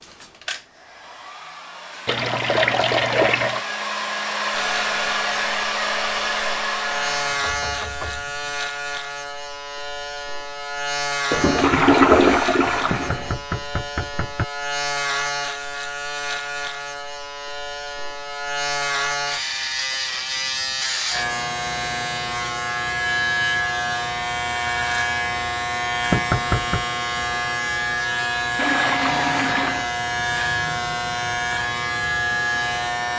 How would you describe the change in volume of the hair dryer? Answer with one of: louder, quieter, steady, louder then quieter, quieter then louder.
louder.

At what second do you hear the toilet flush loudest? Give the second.
12 s.